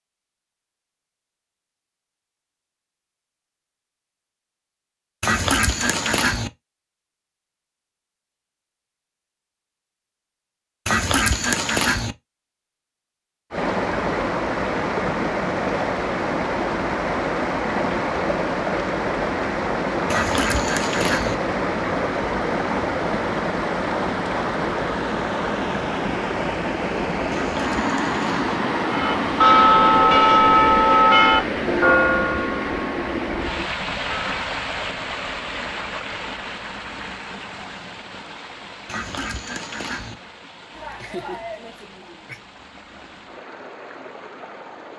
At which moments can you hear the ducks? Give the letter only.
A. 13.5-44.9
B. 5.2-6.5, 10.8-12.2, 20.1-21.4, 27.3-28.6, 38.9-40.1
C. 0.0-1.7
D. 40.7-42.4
B.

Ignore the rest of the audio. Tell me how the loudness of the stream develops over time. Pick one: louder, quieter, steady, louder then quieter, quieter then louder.
quieter.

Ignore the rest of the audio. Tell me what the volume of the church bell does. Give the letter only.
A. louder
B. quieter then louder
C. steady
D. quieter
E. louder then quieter
D.